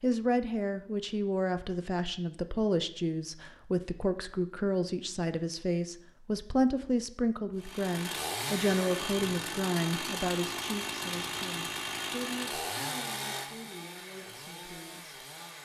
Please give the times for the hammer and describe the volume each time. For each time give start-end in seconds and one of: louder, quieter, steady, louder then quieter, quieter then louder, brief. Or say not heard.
not heard.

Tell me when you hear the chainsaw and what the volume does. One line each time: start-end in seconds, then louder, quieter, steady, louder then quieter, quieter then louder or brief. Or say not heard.
7.5-15.6 quieter.